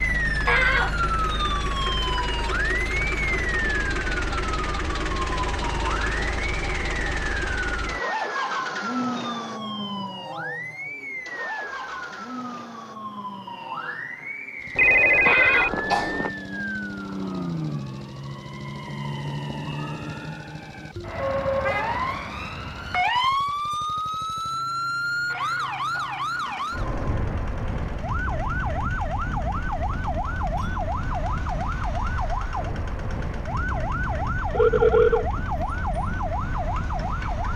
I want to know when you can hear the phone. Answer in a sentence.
The phone can be heard from 14.8 to 16.3 s and from 34.5 to 35.2 s.